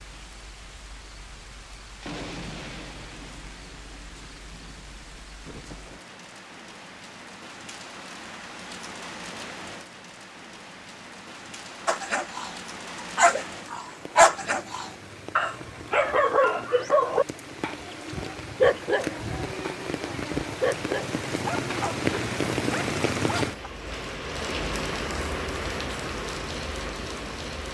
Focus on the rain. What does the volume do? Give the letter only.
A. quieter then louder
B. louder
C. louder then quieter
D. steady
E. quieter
B.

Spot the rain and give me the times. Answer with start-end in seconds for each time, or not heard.
0.0-27.6.